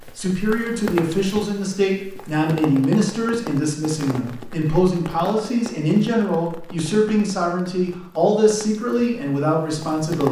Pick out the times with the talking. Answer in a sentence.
You can hear the talking from 0.0 to 10.2 s.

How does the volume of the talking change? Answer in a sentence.
The volume of the talking stays about the same.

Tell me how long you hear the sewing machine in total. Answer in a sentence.
The sewing machine can't be heard in this clip.